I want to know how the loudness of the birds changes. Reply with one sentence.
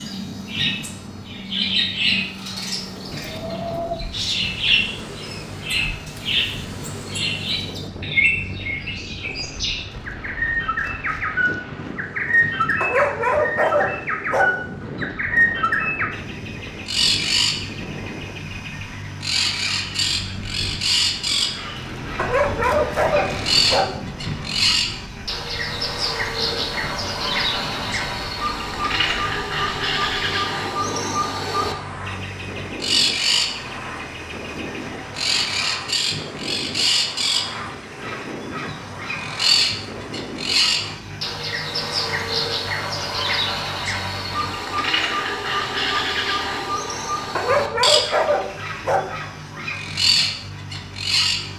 The volume of the birds stays about the same.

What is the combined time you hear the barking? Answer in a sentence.
You can hear the barking for 6 seconds altogether.